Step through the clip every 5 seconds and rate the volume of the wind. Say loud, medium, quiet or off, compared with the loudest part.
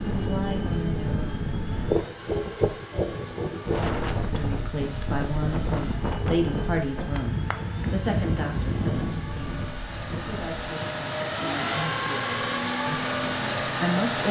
loud, loud, medium.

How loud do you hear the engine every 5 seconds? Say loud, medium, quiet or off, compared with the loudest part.
quiet, quiet, loud.